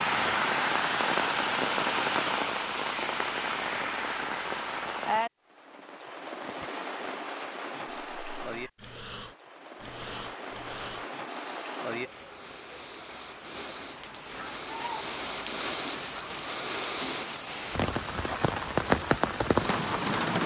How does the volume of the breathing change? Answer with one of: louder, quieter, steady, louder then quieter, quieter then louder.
louder.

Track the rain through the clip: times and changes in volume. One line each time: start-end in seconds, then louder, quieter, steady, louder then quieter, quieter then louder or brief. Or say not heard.
0.0-20.4 quieter then louder.